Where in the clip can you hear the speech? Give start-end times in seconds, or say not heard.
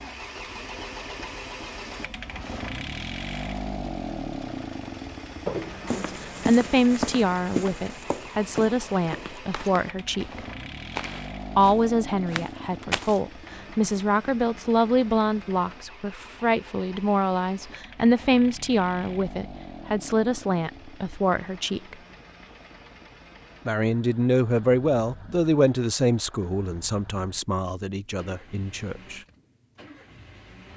5.8-10.4, 11.6-21.9, 23.6-29.2.